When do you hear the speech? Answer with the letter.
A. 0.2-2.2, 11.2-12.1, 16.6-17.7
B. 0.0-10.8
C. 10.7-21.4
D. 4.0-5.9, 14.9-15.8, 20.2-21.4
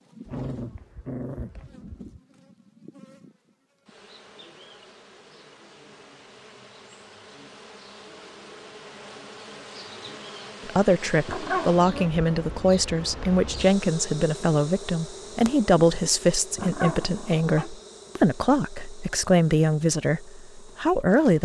C.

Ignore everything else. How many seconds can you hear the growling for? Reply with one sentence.
The growling can be heard for 4 seconds in total.